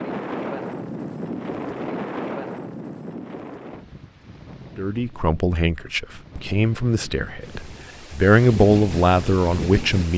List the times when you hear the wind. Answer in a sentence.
The wind can be heard from 0.0 to 10.1 s.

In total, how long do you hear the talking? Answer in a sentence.
You can hear the talking for 5 seconds altogether.